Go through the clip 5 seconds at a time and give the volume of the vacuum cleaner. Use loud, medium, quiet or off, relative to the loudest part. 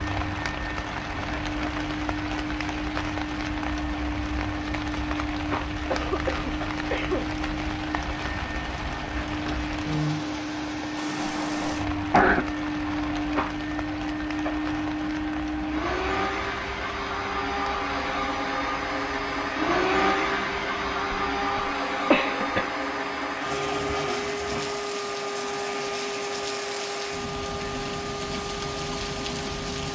medium, medium, loud, loud, loud, medium.